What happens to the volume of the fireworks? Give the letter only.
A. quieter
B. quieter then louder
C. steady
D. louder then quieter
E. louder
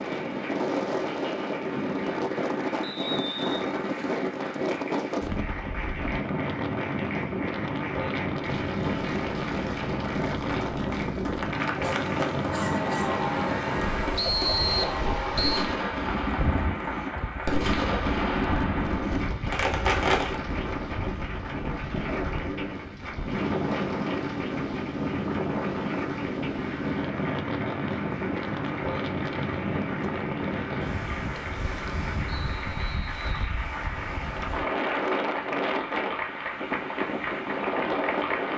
E.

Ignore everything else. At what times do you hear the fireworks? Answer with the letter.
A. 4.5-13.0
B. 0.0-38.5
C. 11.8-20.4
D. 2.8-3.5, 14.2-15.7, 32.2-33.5
C.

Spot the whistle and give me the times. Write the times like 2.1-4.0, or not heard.
2.8-3.5, 14.2-15.7, 32.2-33.5.